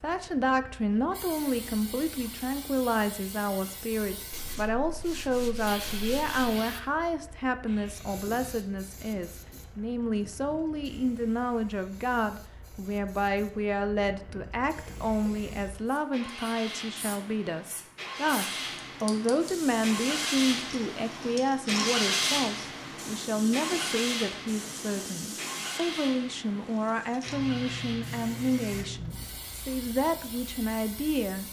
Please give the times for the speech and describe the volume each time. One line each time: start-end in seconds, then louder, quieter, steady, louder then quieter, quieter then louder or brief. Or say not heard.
0.0-31.4 steady.